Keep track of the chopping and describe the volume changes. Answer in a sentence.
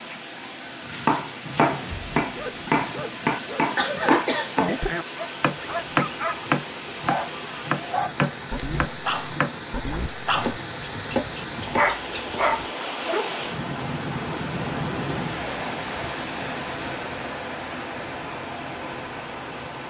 The volume of the chopping goes down.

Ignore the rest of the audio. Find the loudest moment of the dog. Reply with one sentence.
The loudest moment of the dog is at 12 seconds.